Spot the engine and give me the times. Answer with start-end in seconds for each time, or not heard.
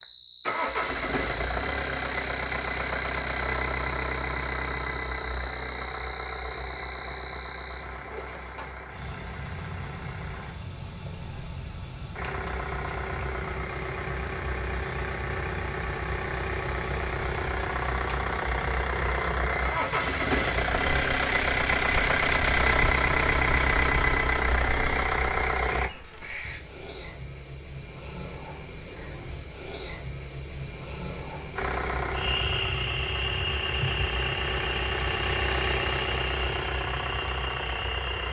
0.0-10.6, 12.2-25.9, 31.6-38.2.